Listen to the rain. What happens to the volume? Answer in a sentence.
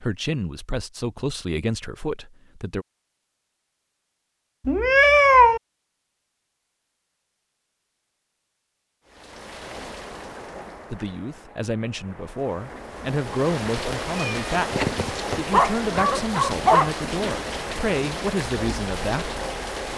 The volume of the rain goes up.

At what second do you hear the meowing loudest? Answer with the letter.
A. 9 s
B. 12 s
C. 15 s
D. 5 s
D.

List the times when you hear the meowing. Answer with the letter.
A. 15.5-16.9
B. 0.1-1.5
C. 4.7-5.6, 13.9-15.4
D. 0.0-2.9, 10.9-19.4
C.